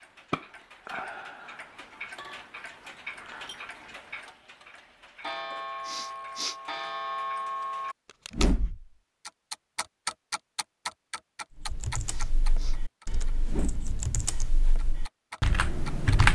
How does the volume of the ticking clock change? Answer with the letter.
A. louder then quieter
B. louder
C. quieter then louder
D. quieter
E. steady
A.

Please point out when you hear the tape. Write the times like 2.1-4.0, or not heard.
8.1-8.6.